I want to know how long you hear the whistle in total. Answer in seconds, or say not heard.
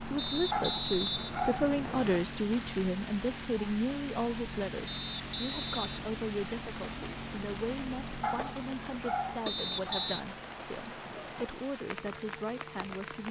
4 s.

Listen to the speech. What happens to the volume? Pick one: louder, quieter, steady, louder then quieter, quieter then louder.
quieter.